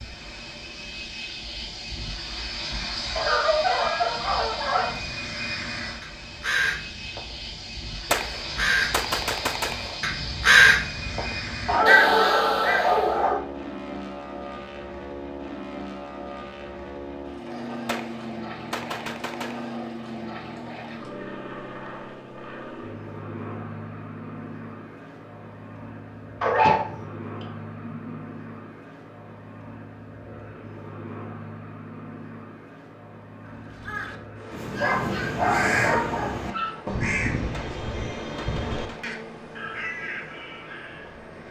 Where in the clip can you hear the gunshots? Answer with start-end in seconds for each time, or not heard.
8.1-10.0, 17.9-19.8, 37.5-39.2.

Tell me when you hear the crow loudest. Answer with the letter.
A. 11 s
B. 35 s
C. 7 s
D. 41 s
A.